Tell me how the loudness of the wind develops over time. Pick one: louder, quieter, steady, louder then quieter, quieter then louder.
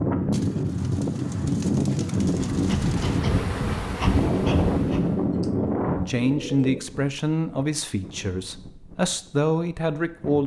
quieter.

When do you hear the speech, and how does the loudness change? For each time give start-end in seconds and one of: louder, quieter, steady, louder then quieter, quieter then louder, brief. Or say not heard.
6.0-10.4 quieter then louder.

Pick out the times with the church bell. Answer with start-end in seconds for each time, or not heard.
not heard.